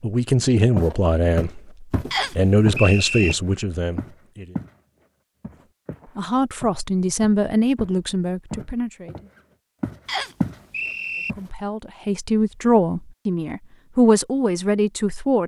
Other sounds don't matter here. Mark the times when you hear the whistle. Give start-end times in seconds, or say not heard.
2.1-3.4, 10.1-11.3.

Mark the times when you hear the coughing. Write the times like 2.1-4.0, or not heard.
not heard.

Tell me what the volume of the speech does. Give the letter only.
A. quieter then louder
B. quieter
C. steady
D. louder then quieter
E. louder
C.